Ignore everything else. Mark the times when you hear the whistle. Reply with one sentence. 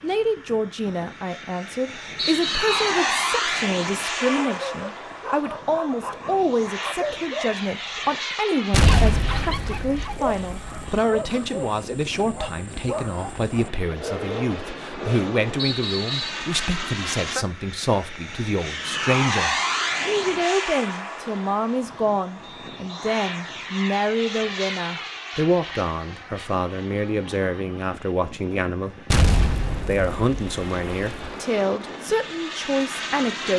You can hear the whistle from 2.1 to 3.0 s, from 15.6 to 16.4 s and from 22.4 to 23.1 s.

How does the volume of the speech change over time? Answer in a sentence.
The loudness of the speech stays about the same.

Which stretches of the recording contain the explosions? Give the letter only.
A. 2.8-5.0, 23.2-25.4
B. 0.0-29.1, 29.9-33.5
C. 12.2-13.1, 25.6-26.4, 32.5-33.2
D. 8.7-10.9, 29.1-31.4
D.